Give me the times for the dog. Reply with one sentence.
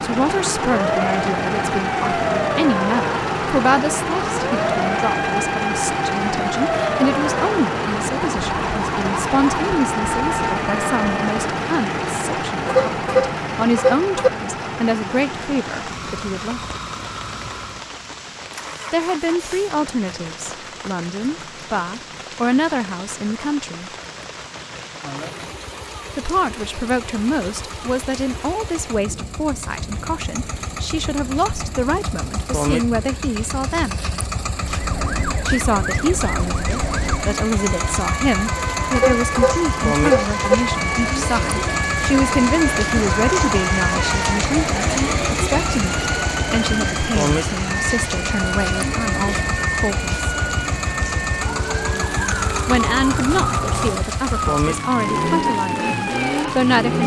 You can't hear the dog here.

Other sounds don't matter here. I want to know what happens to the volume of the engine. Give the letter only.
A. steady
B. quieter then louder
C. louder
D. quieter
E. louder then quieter
B.